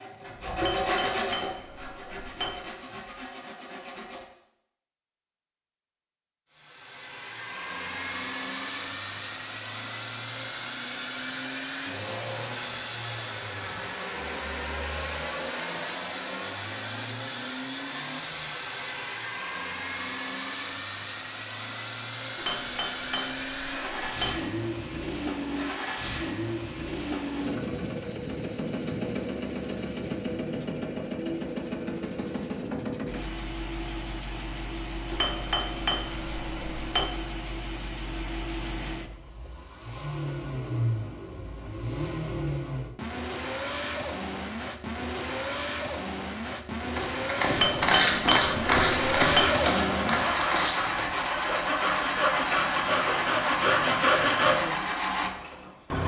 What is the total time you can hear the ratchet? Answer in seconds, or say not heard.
not heard.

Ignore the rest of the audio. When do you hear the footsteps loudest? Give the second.
48 s.